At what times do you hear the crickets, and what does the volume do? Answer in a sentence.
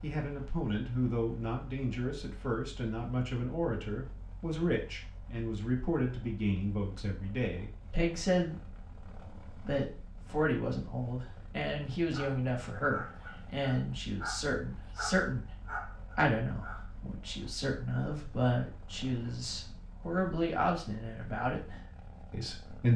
The crickets can't be heard in this clip.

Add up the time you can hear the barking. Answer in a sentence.
The barking can be heard for 5 seconds in total.